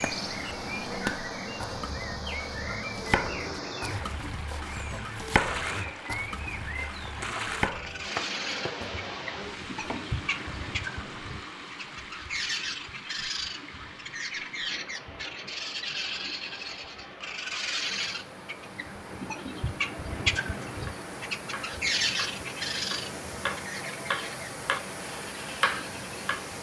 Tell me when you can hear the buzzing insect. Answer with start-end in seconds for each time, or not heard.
not heard.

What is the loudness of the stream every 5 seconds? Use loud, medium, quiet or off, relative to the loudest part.
loud, loud, medium, medium, loud, loud.